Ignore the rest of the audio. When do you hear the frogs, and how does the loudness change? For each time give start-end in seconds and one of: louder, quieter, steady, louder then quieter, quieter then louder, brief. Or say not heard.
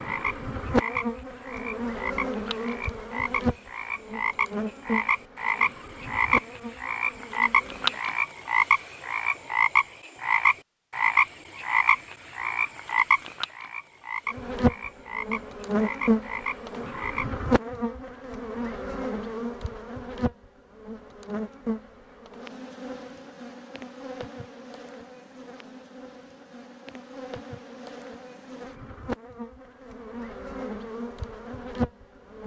0.0-17.2 louder then quieter.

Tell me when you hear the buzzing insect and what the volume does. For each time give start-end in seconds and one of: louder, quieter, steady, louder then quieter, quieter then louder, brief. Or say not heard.
0.0-8.0 quieter
14.3-32.4 quieter then louder.